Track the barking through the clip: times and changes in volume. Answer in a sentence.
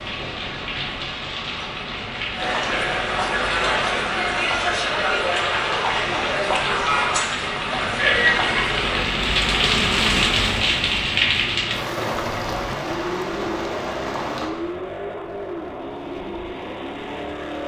You can't hear the barking here.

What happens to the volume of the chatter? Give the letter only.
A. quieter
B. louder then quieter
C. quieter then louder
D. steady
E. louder
E.